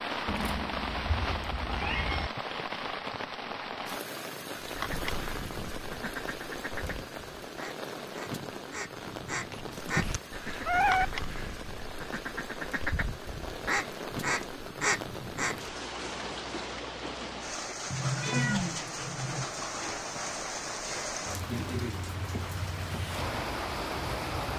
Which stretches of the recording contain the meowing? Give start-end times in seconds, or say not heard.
0.2-2.3, 9.5-11.1, 17.9-19.4.